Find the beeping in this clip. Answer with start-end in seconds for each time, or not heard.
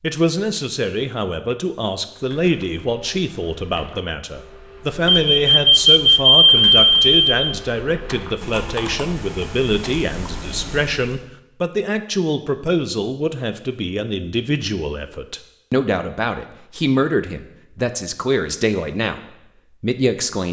5.0-7.3.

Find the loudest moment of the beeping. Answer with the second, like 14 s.
6 s.